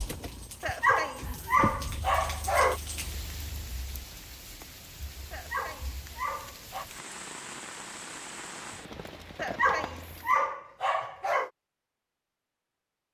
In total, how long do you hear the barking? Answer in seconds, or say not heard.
6 s.